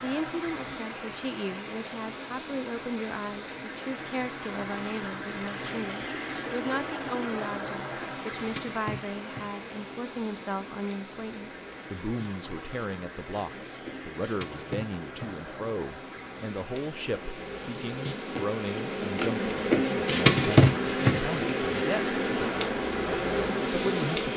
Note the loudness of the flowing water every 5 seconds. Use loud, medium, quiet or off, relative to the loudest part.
loud, loud, medium, medium, loud.